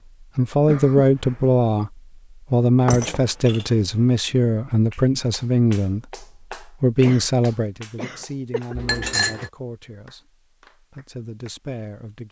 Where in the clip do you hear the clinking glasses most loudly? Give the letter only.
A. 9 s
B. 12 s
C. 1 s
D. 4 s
A.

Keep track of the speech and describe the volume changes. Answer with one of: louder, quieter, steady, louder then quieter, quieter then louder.
quieter.